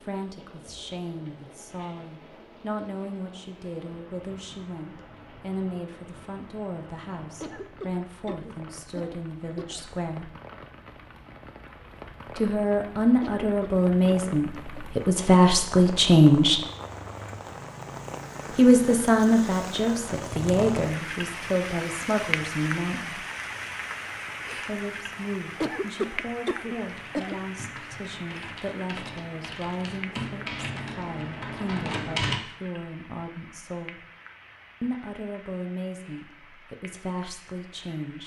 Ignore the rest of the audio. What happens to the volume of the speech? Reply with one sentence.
The loudness of the speech goes up, then down.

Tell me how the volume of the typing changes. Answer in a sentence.
The loudness of the typing goes up.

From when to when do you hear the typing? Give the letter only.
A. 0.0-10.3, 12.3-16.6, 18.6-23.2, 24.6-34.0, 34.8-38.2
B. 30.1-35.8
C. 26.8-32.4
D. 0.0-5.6
C.